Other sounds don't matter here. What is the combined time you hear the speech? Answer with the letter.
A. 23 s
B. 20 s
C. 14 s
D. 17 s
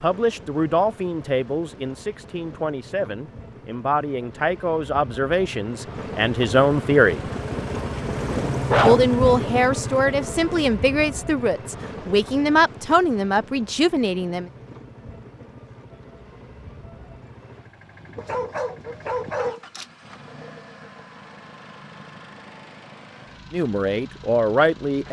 C.